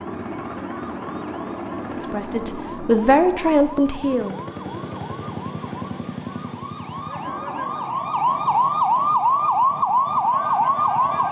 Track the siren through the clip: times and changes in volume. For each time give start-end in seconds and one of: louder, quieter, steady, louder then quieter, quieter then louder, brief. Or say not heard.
0.0-11.2 louder.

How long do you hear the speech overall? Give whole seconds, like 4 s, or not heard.
2 s.